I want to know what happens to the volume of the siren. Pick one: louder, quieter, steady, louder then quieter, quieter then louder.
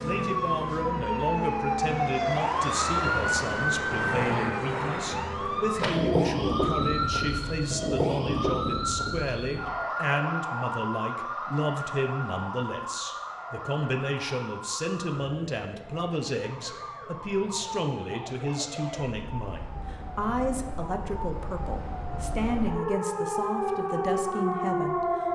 quieter then louder.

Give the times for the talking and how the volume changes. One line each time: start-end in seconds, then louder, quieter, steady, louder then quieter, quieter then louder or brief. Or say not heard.
0.0-25.2 steady.